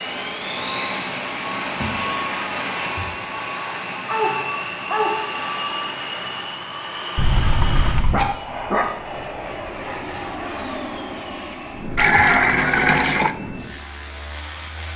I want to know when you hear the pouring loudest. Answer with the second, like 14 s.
12 s.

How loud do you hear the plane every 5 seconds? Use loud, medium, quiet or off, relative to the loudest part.
loud, loud, medium.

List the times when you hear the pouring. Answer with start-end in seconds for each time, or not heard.
1.8-3.2, 7.2-8.3, 11.9-13.3.